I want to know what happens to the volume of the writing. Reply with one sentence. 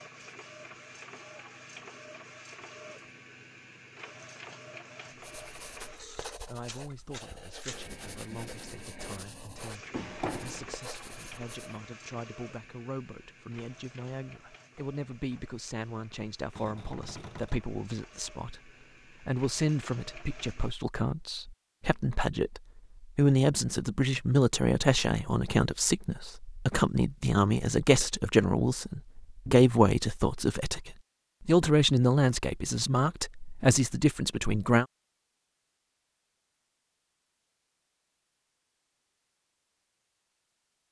The loudness of the writing stays about the same.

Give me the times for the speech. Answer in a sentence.
The speech can be heard from 6.5 to 34.9 s.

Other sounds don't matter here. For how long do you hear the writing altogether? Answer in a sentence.
The writing can be heard for 7 seconds in total.